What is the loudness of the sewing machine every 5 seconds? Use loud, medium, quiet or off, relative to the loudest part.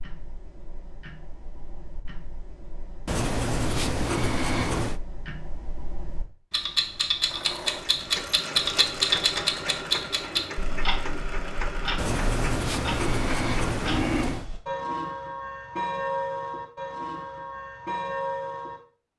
off, loud, loud, off.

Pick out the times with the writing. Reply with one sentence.
You can hear the writing from 3.0 to 5.0 s and from 11.9 to 14.5 s.